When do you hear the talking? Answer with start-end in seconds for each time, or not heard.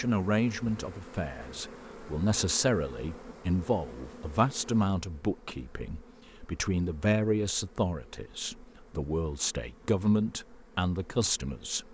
0.0-11.8.